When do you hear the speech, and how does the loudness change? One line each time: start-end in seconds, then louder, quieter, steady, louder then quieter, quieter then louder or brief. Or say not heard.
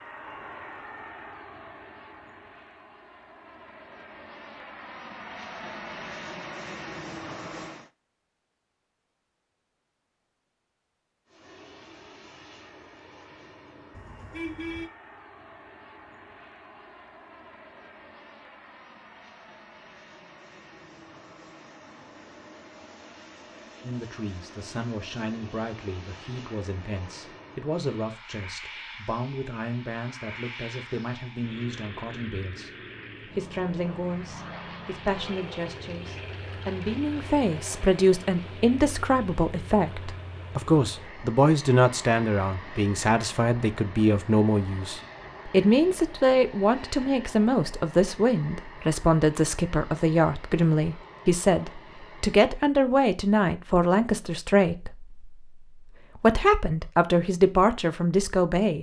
23.8-58.7 louder.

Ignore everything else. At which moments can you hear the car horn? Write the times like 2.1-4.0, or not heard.
13.9-14.9.